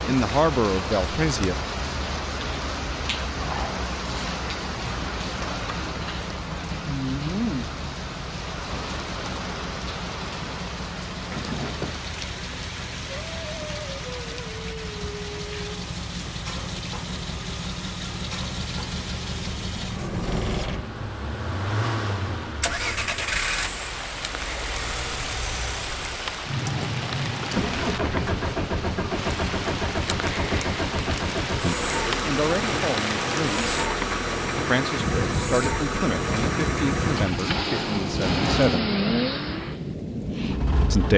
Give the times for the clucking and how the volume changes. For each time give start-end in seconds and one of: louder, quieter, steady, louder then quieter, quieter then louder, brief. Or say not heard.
not heard.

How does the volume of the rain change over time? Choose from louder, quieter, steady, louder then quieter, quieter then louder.
quieter then louder.